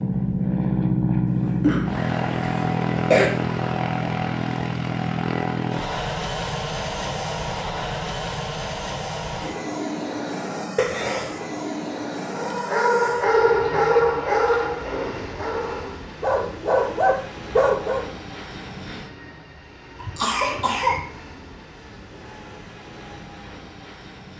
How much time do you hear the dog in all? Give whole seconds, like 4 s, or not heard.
6 s.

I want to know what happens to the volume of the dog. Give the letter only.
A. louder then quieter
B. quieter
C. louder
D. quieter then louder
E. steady
D.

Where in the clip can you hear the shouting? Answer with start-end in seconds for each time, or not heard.
not heard.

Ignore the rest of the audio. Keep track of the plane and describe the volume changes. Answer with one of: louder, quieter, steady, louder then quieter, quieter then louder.
quieter.